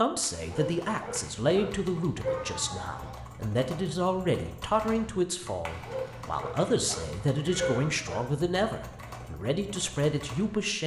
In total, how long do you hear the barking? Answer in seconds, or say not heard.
5 s.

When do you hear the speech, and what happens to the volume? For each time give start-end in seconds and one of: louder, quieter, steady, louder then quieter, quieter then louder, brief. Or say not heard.
0.0-10.8 steady.